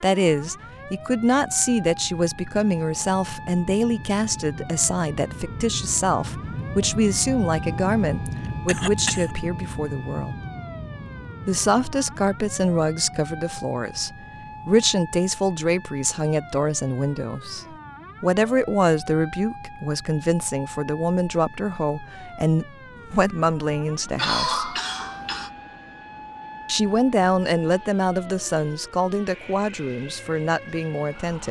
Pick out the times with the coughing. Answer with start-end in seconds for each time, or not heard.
8.2-9.3, 24.1-25.5.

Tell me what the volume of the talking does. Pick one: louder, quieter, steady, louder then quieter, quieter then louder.
steady.